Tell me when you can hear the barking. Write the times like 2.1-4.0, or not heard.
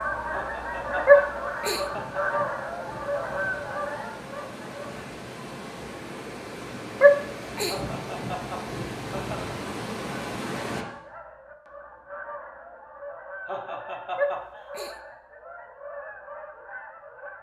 1.1-1.8, 7.0-7.8, 14.2-14.9.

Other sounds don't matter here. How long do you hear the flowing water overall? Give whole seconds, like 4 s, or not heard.
11 s.